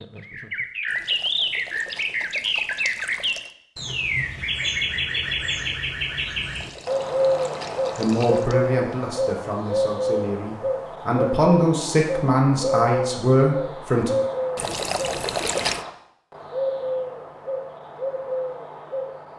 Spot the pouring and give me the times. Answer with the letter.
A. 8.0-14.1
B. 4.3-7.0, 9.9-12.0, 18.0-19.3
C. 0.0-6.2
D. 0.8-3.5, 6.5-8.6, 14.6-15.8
D.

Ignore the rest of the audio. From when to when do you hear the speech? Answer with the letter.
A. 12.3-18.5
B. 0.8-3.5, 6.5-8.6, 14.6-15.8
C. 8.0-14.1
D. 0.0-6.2
C.